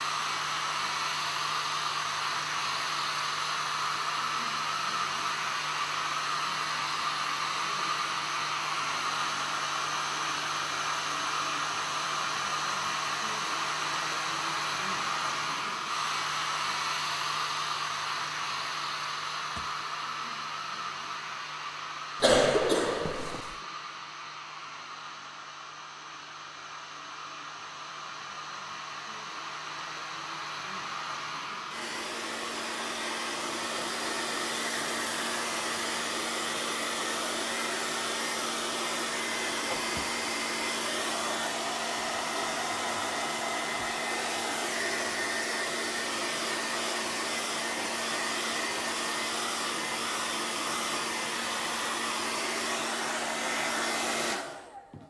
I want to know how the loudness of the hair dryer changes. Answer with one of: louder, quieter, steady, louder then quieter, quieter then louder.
quieter then louder.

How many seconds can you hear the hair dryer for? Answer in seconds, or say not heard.
55 s.